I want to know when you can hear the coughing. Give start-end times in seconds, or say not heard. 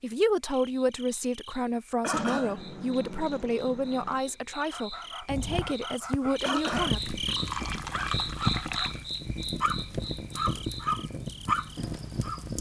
2.0-2.6, 6.4-7.0.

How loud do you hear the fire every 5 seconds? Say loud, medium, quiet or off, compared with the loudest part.
off, loud, loud.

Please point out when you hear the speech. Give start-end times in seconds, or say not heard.
0.0-7.2.